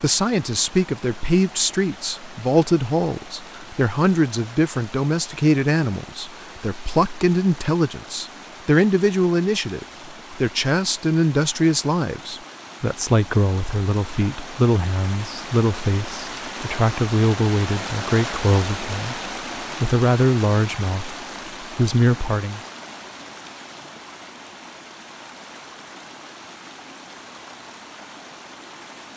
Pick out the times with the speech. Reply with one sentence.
The speech can be heard from 0.0 to 19.2 s, from 19.8 to 21.1 s and from 21.8 to 22.6 s.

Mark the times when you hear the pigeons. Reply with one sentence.
The pigeons can't be heard in this clip.